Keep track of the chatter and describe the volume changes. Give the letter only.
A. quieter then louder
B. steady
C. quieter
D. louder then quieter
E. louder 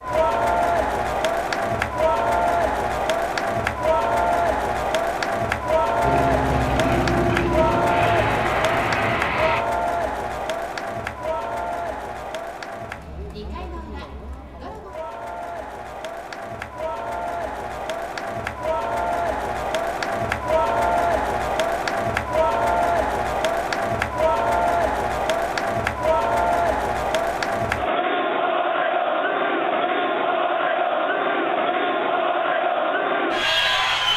A.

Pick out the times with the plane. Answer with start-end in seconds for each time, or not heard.
6.0-9.7.